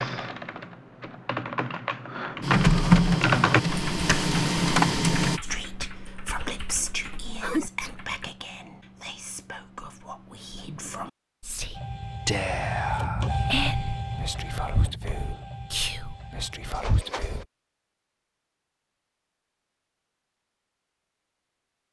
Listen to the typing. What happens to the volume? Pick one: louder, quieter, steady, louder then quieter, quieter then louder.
louder then quieter.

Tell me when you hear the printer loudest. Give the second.
3 s.